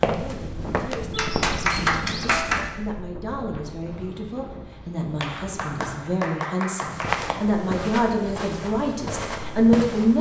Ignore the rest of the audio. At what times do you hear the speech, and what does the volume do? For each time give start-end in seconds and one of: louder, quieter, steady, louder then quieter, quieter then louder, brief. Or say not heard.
0.1-10.1 louder.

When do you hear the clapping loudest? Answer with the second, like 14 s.
2 s.